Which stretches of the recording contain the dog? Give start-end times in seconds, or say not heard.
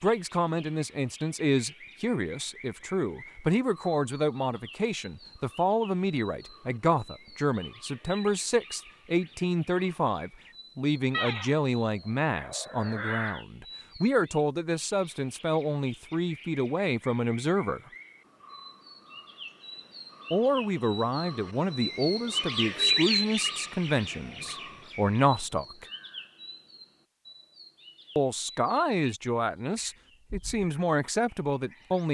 11.1-11.6, 12.3-13.4.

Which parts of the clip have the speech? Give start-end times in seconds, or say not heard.
0.0-17.8, 20.3-25.9, 28.1-32.0.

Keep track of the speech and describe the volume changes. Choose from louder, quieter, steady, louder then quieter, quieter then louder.
steady.